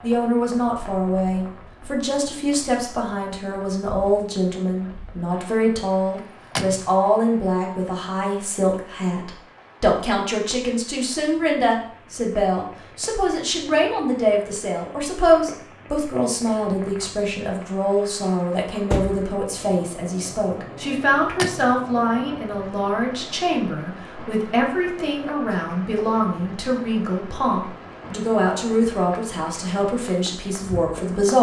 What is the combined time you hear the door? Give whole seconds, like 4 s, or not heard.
2 s.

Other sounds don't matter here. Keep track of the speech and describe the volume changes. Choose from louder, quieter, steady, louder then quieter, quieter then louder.
steady.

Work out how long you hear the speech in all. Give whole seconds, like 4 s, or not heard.
31 s.